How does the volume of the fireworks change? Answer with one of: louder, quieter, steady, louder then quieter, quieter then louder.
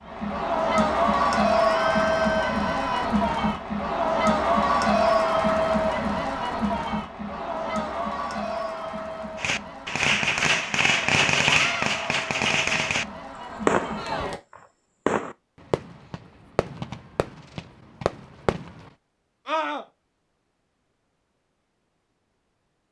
quieter.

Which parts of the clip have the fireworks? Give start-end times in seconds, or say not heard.
9.3-18.9.